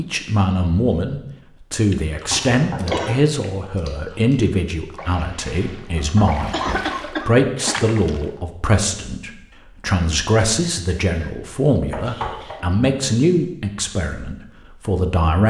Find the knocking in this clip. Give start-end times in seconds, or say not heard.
2.2-3.1, 6.0-7.0, 11.9-12.6.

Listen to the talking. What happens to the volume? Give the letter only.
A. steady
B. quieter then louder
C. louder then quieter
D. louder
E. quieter
A.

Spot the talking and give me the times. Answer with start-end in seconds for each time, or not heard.
0.0-15.4.